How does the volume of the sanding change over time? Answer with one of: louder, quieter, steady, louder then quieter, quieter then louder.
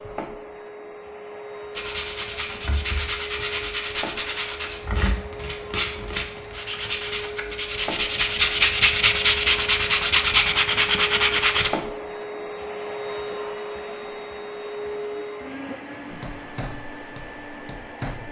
louder.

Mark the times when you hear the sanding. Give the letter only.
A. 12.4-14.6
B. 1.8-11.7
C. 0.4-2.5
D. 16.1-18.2
B.